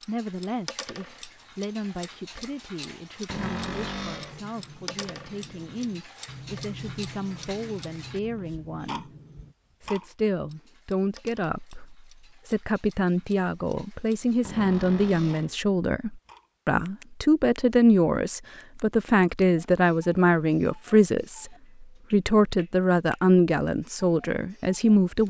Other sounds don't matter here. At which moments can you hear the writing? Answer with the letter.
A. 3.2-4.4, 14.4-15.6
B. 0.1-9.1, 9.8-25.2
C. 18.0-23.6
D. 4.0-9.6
D.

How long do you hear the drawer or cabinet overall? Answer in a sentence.
The drawer or cabinet can be heard for 2 seconds in total.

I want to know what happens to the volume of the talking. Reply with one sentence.
The loudness of the talking goes up.